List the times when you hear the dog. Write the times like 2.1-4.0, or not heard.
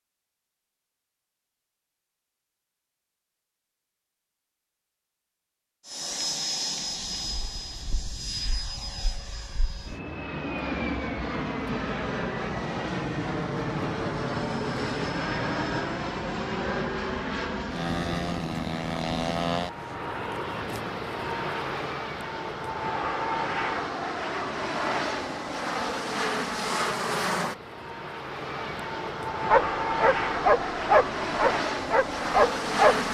29.4-33.0.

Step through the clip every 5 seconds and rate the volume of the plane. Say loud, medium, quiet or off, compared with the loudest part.
off, medium, loud, loud, loud, loud, loud.